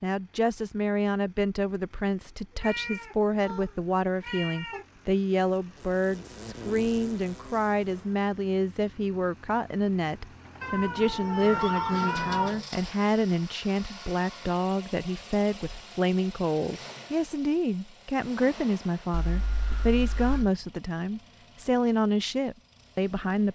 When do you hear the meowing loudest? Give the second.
12 s.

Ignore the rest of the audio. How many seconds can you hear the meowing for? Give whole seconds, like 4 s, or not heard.
6 s.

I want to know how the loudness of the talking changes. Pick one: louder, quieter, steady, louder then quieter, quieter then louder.
steady.